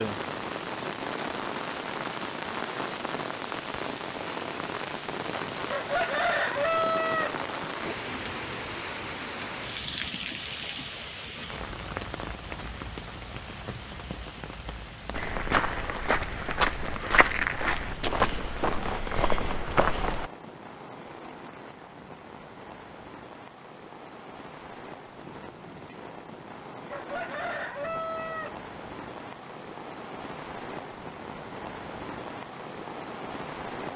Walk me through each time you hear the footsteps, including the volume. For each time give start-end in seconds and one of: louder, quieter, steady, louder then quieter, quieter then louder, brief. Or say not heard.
15.1-20.3 steady.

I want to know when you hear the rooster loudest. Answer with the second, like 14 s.
7 s.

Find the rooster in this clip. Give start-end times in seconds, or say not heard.
5.7-7.3, 26.9-28.6.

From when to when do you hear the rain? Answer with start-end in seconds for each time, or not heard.
0.0-33.9.